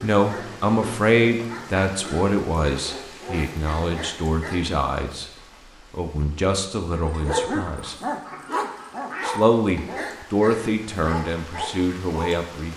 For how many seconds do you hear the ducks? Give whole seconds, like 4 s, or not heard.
2 s.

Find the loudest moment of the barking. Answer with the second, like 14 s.
7 s.